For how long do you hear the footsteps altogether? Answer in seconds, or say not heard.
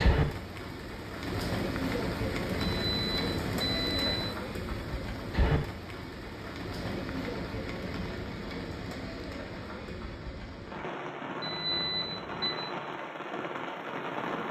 not heard.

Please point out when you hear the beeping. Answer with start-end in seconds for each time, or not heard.
2.6-4.2, 11.4-12.6.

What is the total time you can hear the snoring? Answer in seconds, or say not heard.
not heard.